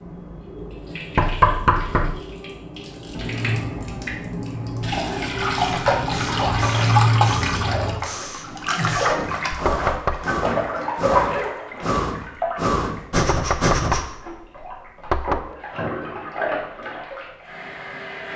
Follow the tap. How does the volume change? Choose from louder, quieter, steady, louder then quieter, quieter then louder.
louder then quieter.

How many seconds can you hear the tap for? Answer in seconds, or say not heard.
18 s.